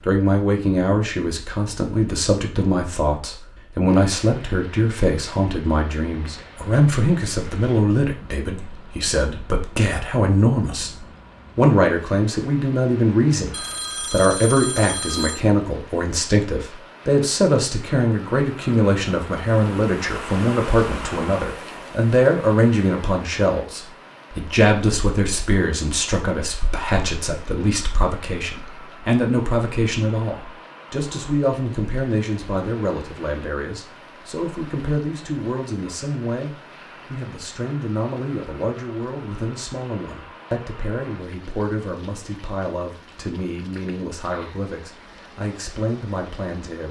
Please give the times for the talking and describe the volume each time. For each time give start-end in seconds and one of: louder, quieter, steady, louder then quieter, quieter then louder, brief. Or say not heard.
0.1-46.8 quieter.